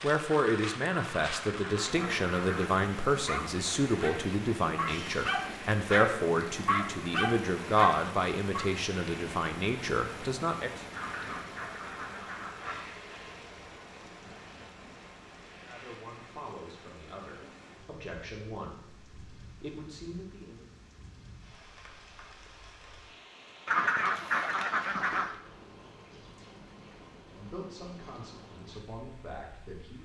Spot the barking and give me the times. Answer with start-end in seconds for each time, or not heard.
3.1-8.7.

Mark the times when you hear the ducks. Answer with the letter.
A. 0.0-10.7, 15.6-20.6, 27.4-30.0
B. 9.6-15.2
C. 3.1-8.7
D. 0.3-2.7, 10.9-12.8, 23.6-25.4
D.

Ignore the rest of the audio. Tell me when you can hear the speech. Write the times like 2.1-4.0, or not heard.
0.0-10.7, 15.6-20.6, 27.4-30.0.